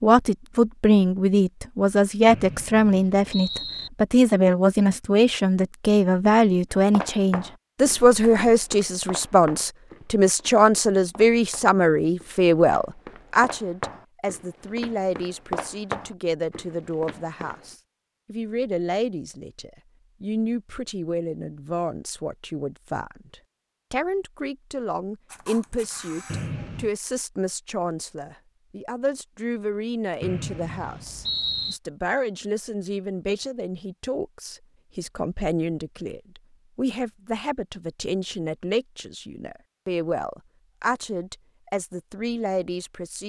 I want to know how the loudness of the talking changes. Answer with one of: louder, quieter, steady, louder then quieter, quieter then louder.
quieter.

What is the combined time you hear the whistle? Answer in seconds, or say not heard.
4 s.